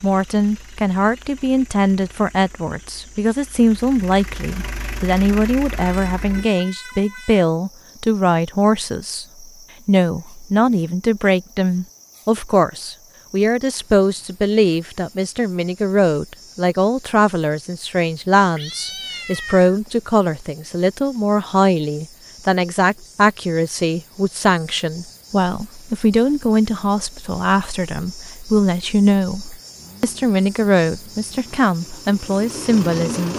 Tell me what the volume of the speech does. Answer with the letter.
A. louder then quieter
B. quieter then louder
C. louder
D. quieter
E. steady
E.